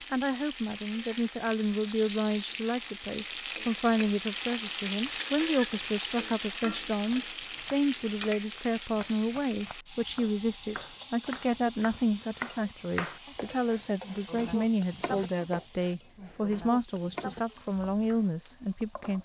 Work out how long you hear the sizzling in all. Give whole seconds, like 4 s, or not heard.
19 s.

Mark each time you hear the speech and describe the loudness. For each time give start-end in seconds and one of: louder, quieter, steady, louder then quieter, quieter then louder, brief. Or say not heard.
0.1-19.2 steady.